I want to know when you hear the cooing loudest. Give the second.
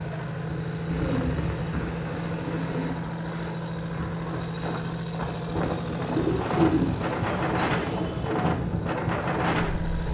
7 s.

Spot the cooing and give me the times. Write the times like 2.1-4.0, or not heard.
0.9-2.9, 6.0-8.4.